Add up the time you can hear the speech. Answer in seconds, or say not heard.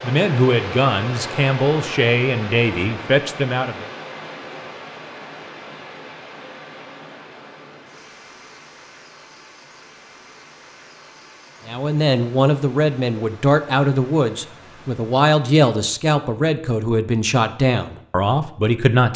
11 s.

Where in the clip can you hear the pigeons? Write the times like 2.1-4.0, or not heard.
not heard.